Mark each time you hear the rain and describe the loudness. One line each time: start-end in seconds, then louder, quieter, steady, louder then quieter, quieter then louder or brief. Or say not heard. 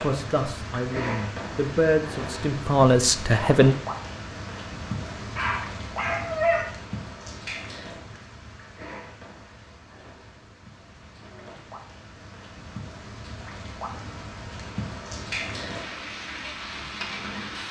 0.0-17.6 quieter then louder.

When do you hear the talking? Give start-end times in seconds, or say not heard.
0.0-3.8.